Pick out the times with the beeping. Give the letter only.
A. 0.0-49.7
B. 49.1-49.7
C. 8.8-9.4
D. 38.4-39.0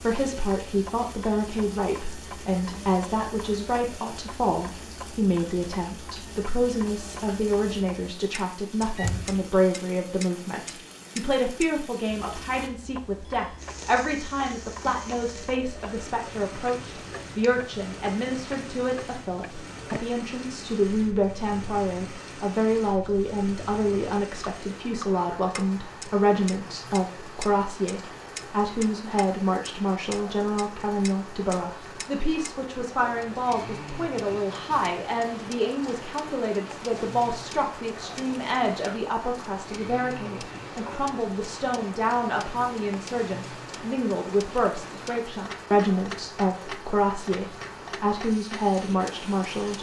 C.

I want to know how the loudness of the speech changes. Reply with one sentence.
The loudness of the speech stays about the same.